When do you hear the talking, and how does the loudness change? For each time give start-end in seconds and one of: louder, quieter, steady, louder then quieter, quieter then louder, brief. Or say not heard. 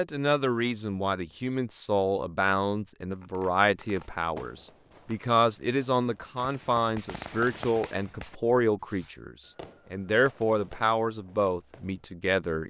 0.0-12.6 steady.